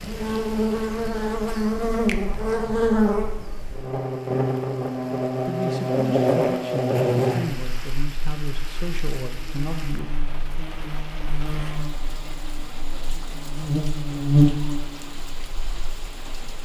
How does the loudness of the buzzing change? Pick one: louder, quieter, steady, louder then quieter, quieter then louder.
quieter then louder.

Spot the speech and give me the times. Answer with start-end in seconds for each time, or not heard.
5.5-10.3.